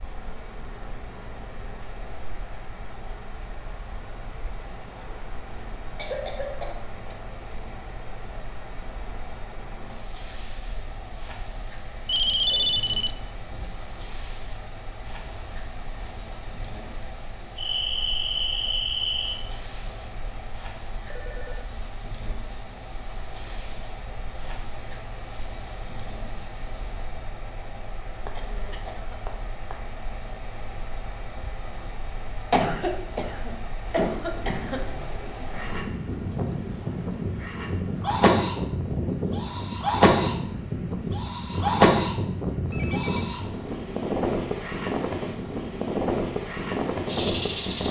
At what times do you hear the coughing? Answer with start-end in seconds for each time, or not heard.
6.0-6.9, 28.2-29.8, 32.5-34.8.